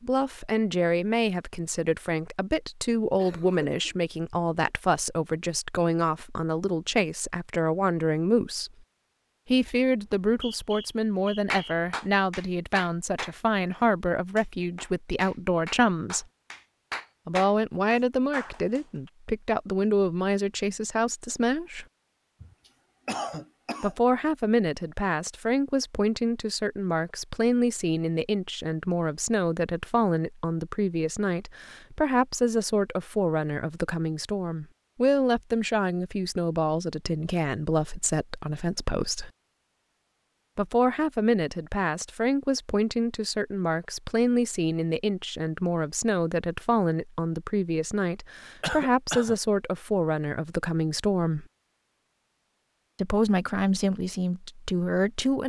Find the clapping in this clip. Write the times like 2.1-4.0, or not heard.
11.5-18.8.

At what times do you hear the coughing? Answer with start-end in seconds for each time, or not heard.
3.1-4.0, 22.4-23.9, 48.6-49.4.